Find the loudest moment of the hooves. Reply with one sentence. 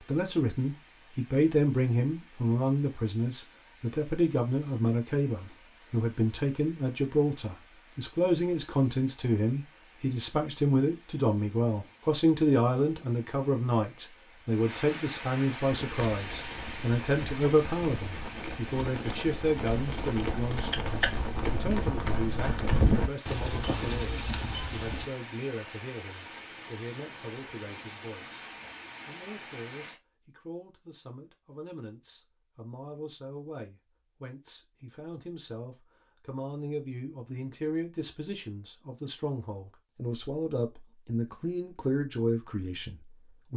The loudest moment of the hooves is at 23 seconds.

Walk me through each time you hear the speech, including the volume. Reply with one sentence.
You can hear the speech from 0.0 to 28.4 s, getting quieter; and from 29.1 to 43.5 s, getting louder.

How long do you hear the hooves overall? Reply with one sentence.
The hooves can be heard for 9 seconds in total.